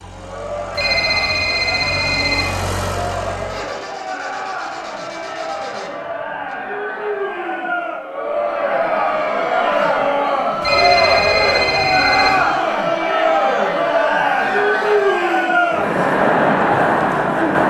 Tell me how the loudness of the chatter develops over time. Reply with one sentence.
The volume of the chatter goes up.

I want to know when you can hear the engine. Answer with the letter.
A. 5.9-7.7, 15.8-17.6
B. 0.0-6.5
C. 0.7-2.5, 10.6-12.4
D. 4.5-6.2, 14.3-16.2
B.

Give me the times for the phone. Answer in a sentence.
The phone can be heard from 0.7 to 2.5 s and from 10.6 to 12.4 s.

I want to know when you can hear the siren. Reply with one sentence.
You can't hear the siren here.